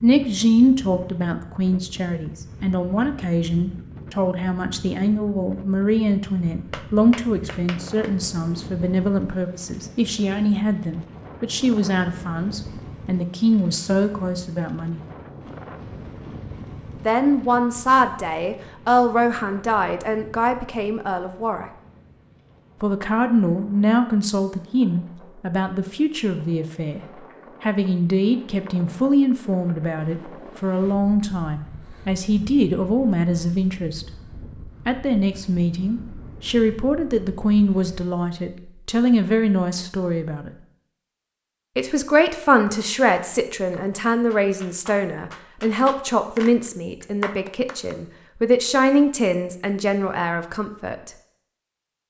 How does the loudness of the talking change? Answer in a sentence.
The loudness of the talking stays about the same.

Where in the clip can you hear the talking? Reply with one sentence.
The talking can be heard from 0.0 to 15.0 s, from 17.1 to 21.7 s, from 22.8 to 27.0 s, from 27.6 to 34.1 s, from 34.9 to 40.5 s and from 41.8 to 51.1 s.